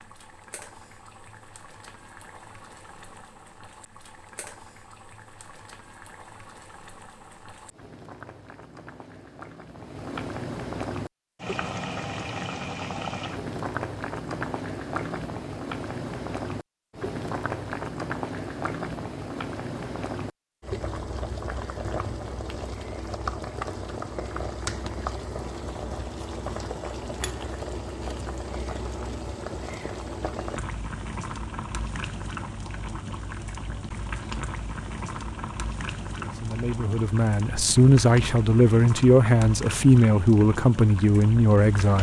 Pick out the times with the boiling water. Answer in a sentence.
The boiling water can be heard from 0.0 to 41.9 s.